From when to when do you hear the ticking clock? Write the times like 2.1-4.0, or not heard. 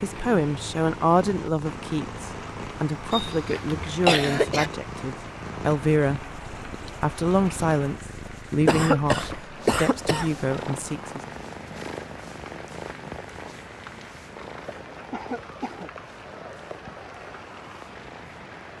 not heard.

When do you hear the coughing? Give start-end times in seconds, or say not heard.
3.1-4.7, 8.7-10.3, 15.1-15.9.